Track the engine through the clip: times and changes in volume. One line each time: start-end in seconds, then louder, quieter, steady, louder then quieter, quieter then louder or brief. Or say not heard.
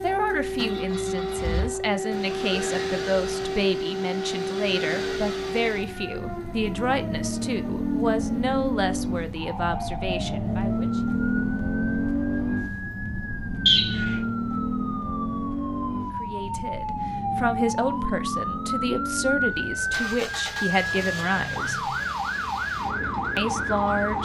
0.0-24.2 louder then quieter.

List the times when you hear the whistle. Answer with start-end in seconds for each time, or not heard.
13.7-14.2.